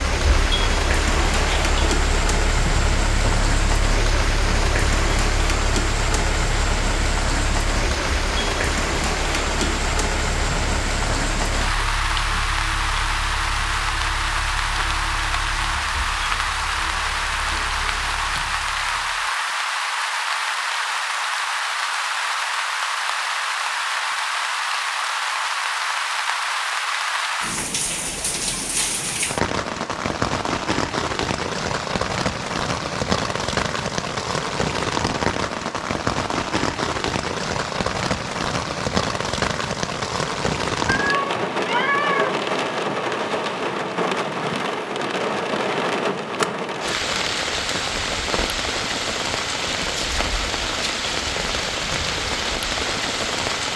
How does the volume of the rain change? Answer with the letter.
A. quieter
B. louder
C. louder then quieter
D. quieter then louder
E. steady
E.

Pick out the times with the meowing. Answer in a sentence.
The meowing can be heard from 40.9 to 42.4 s.